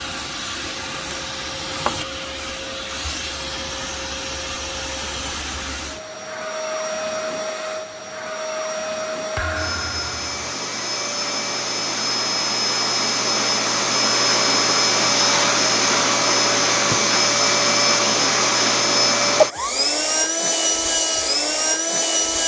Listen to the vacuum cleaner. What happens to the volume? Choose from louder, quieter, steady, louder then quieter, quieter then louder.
louder.